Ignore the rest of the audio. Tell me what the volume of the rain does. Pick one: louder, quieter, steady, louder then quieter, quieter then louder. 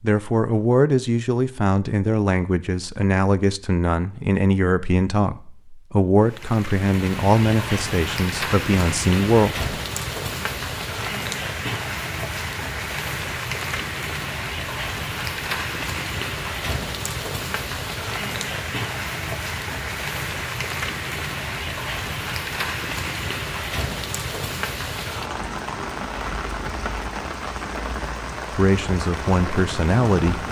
steady.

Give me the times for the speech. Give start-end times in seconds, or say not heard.
0.0-9.7, 28.5-30.4.